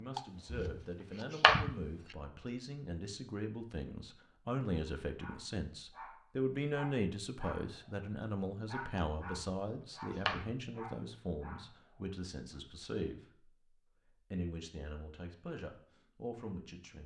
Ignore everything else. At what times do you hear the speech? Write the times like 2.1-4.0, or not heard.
0.0-17.0.